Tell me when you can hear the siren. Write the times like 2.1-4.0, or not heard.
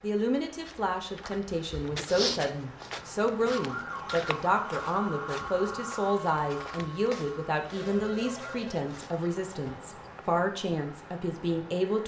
3.5-8.6.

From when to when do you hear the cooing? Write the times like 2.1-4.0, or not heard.
not heard.